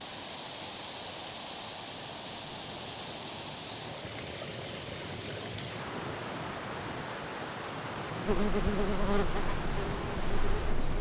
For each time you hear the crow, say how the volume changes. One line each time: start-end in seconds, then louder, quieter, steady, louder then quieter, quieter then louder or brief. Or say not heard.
not heard.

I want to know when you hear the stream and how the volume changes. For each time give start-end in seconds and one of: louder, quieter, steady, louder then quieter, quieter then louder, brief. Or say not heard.
0.0-10.9 steady.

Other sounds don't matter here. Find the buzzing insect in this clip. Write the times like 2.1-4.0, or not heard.
8.2-10.9.